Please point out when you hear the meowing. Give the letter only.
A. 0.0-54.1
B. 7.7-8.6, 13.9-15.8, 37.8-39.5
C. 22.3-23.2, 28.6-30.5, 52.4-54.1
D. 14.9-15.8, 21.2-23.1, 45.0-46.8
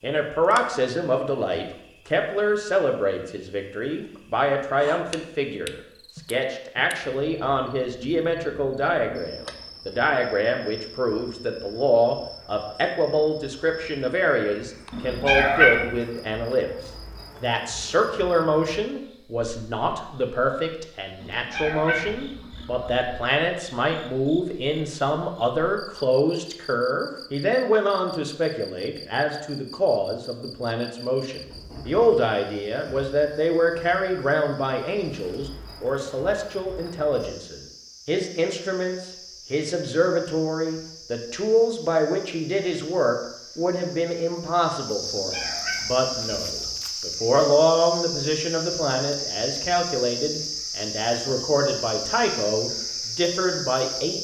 D.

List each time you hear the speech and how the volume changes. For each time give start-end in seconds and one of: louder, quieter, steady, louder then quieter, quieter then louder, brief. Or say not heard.
0.0-54.1 steady.